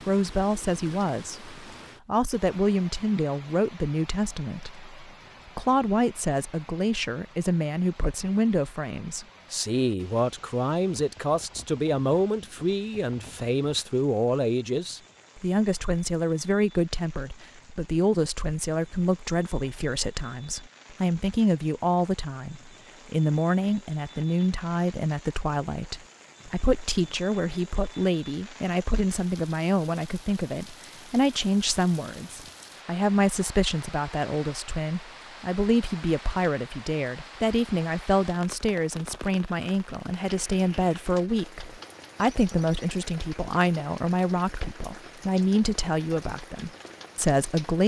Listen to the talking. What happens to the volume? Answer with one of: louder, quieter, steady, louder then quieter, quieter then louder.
steady.